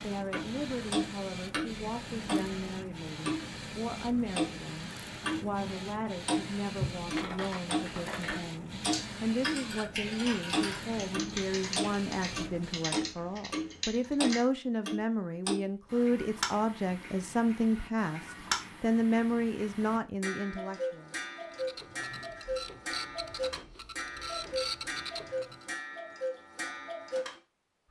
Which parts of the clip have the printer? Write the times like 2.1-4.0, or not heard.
0.0-12.9, 21.5-25.6.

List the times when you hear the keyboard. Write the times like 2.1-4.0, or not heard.
7.1-14.4.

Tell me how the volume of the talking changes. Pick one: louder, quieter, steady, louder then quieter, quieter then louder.
louder.